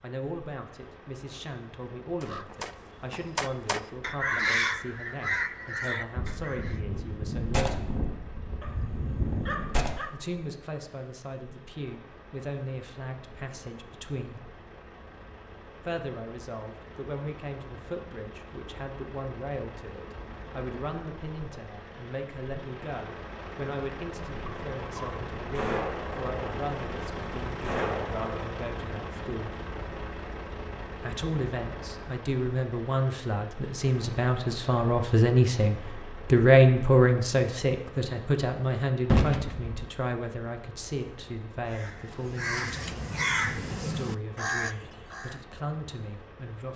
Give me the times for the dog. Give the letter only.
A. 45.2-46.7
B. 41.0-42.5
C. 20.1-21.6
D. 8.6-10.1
D.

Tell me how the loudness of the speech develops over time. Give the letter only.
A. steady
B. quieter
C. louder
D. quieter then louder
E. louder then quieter
E.